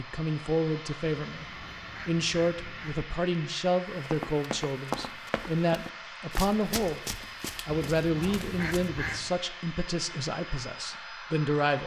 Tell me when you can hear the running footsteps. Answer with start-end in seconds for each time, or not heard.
3.9-8.9.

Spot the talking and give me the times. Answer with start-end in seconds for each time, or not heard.
0.0-1.4, 2.0-11.8.